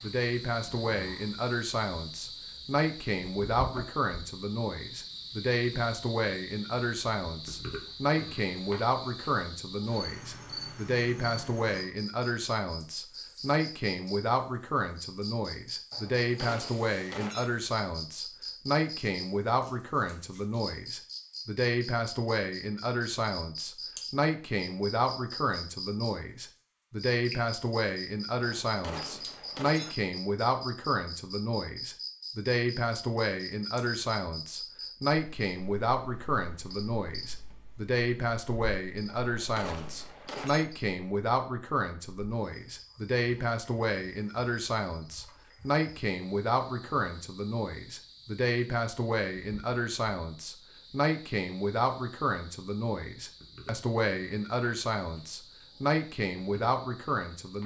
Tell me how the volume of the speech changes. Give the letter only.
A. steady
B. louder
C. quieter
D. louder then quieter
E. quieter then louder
A.